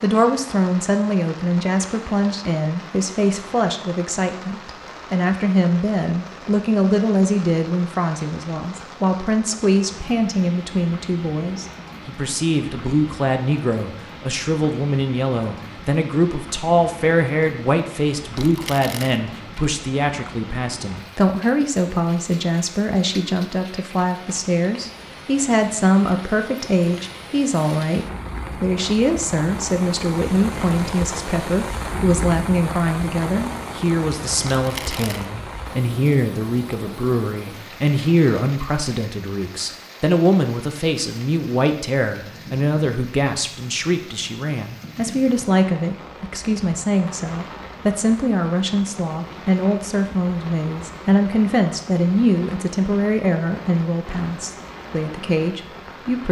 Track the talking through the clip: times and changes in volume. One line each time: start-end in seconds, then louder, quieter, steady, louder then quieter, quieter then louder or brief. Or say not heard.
0.0-56.2 steady.